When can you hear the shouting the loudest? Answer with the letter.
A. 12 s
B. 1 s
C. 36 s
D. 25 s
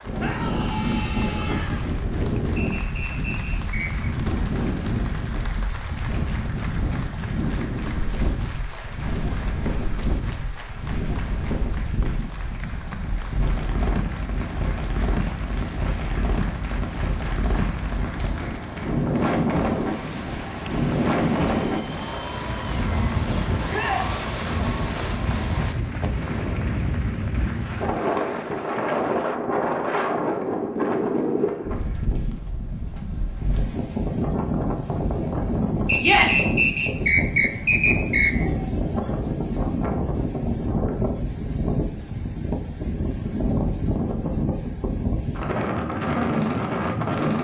C.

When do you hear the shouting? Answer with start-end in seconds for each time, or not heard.
0.1-1.9, 23.6-24.1, 36.0-36.5.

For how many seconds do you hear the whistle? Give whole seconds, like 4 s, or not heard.
4 s.